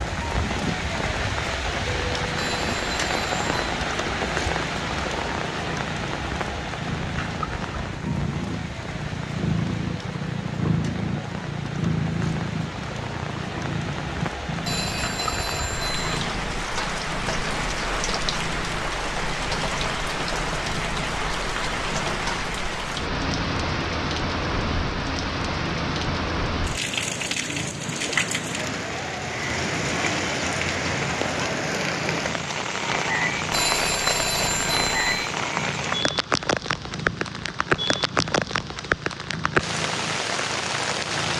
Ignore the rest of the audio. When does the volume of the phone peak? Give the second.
34 s.